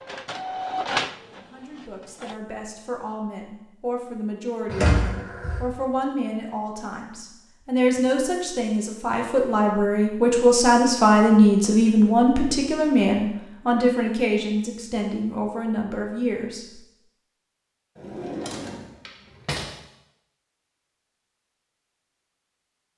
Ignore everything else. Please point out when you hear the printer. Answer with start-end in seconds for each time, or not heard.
0.0-2.4.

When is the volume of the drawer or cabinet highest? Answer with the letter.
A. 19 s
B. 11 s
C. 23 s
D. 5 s
D.